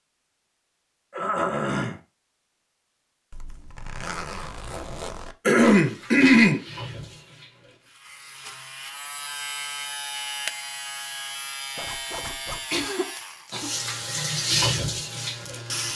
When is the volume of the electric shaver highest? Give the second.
10 s.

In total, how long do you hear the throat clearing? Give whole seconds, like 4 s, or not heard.
3 s.